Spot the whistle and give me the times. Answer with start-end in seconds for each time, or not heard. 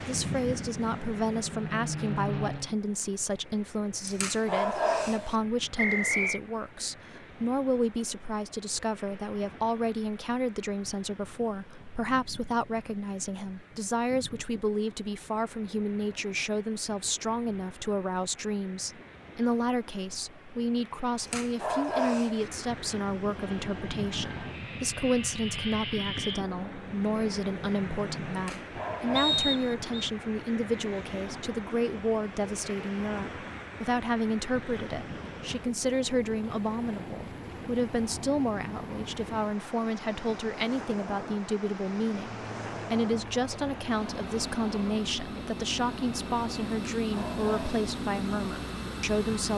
5.8-6.4, 29.1-30.1.